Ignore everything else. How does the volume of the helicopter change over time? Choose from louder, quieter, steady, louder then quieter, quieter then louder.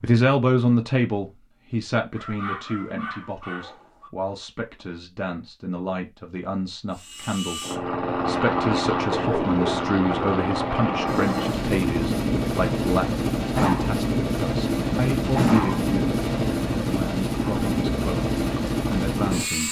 steady.